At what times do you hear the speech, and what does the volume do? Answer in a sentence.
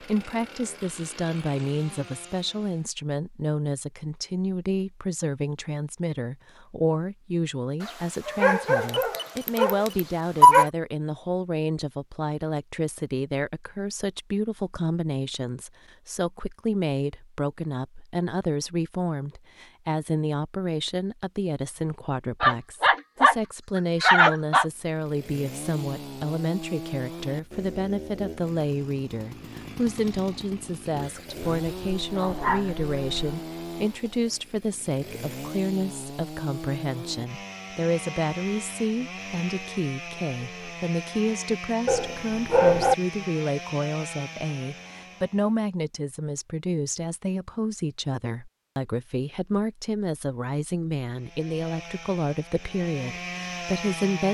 The speech can be heard from 0.0 to 54.3 s, at a steady volume.